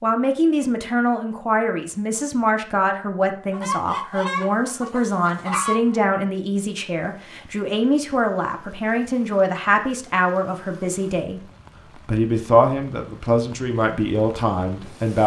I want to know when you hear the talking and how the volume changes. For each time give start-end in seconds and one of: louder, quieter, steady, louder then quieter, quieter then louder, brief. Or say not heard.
0.0-15.2 steady.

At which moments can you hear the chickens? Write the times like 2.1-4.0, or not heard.
3.5-6.0.